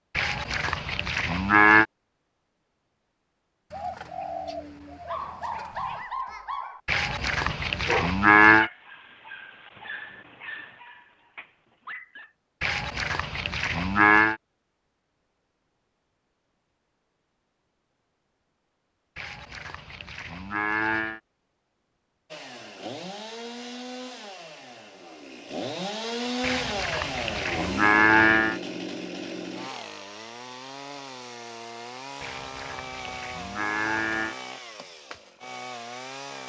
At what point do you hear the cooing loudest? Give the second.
4 s.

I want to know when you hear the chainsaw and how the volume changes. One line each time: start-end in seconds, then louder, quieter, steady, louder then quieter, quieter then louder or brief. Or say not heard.
22.3-36.4 louder then quieter.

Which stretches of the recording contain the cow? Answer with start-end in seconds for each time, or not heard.
0.1-1.9, 6.8-8.7, 12.6-14.3, 19.1-21.2, 26.4-28.6, 32.2-34.4.